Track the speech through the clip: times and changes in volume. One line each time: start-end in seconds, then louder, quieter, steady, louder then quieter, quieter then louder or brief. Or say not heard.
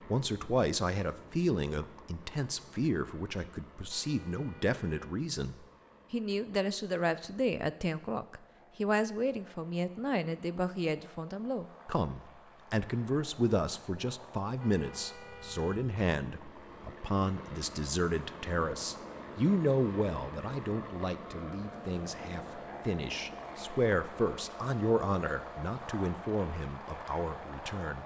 0.1-28.0 steady.